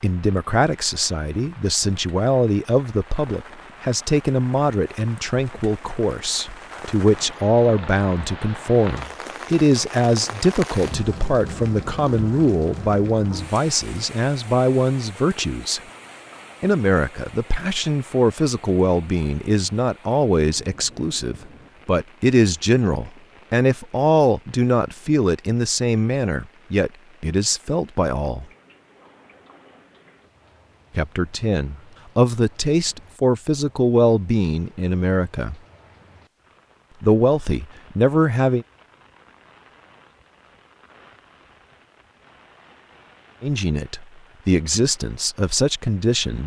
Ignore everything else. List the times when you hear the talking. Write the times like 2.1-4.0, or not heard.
0.0-15.8, 16.6-28.4, 30.9-35.5, 37.0-38.6, 43.4-46.4.